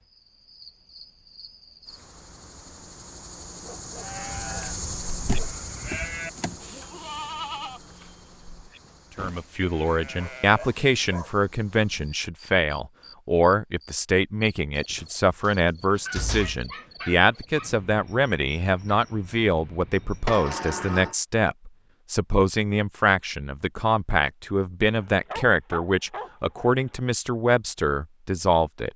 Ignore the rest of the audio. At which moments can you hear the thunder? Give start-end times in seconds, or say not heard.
not heard.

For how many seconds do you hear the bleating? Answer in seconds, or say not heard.
7 s.